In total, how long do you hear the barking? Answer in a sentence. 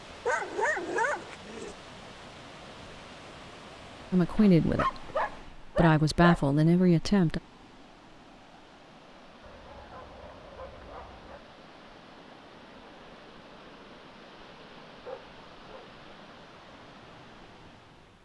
You can hear the barking for 6 seconds altogether.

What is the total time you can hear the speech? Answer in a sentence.
You can hear the speech for 3 seconds altogether.